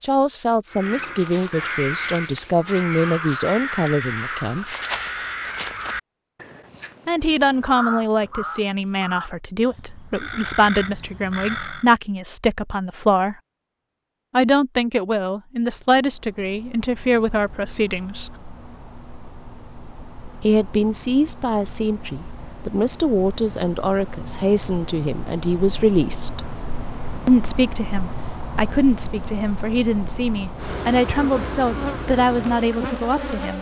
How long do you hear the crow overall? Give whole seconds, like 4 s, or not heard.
11 s.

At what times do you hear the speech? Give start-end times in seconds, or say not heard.
0.0-4.7, 7.0-13.3, 14.3-18.4, 20.4-26.5, 27.2-33.5.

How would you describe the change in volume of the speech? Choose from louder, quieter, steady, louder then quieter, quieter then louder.
steady.